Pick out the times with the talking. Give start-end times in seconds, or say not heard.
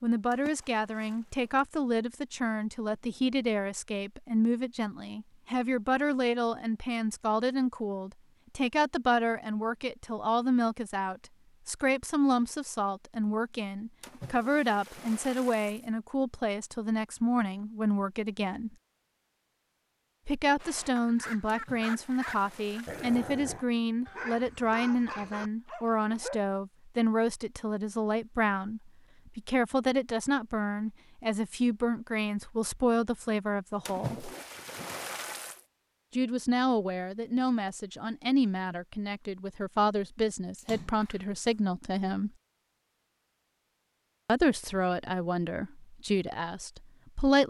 0.0-18.7, 20.2-34.3, 36.1-42.3, 44.2-47.4.